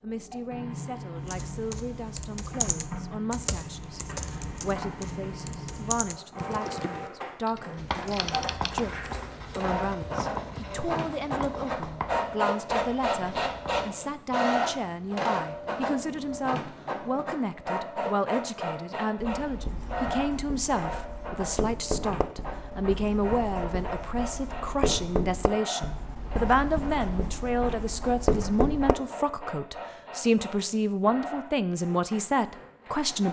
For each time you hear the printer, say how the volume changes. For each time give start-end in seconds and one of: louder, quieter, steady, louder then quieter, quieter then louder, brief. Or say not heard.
0.0-33.2 louder then quieter.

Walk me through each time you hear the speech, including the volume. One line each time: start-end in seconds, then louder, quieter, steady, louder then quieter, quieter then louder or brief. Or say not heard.
0.0-33.2 louder.